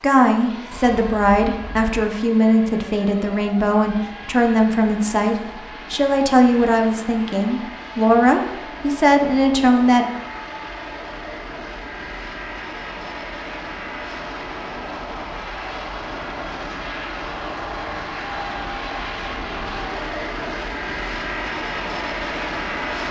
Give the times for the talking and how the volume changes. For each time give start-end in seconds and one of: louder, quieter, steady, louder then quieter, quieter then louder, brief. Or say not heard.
0.0-10.1 steady.